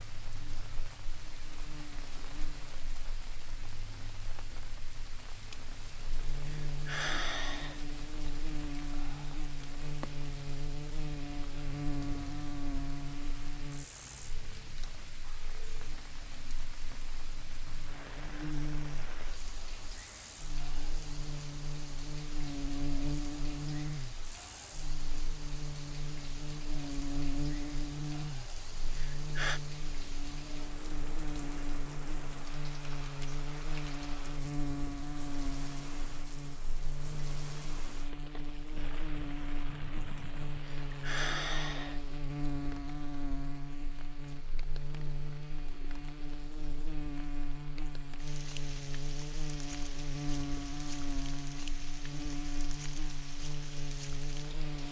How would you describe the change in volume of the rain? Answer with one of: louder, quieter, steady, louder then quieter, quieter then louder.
steady.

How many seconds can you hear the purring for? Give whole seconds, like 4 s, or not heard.
not heard.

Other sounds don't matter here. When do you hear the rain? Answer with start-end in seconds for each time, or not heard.
0.0-54.8.